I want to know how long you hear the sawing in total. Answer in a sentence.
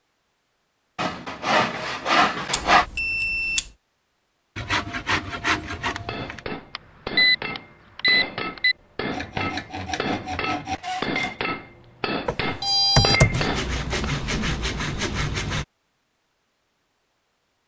The sawing can be heard for 8 seconds in total.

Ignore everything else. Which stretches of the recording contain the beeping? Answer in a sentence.
You can hear the beeping from 2.5 to 3.6 s, from 6.8 to 8.8 s and from 12.2 to 13.5 s.